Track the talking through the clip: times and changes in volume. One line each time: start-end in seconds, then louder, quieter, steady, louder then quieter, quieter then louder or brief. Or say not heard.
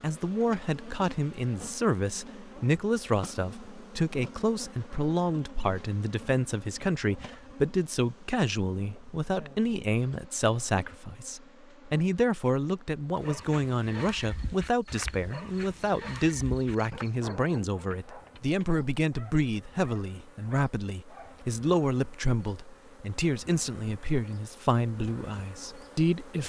0.0-26.4 steady.